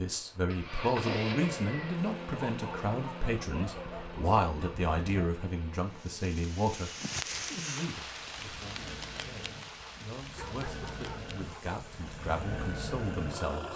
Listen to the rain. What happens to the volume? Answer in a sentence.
The loudness of the rain goes down.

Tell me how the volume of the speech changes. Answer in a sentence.
The volume of the speech goes down, then up.